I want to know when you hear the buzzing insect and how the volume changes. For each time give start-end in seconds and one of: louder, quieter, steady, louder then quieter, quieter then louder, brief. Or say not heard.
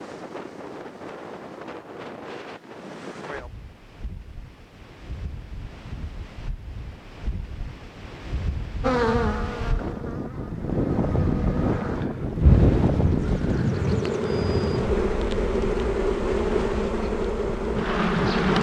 8.8-18.5 louder.